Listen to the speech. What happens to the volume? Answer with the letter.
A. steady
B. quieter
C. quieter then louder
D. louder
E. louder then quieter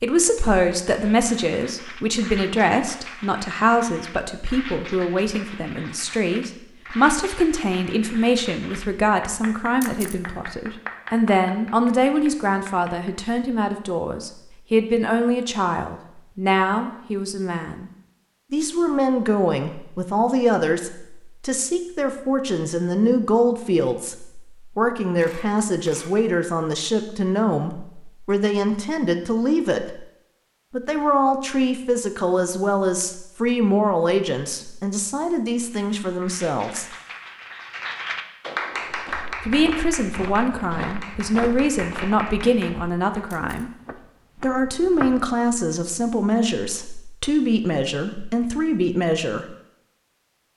A.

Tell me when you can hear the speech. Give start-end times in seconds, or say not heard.
0.0-17.9, 18.5-30.0, 30.7-36.9, 39.4-43.7, 44.4-49.5.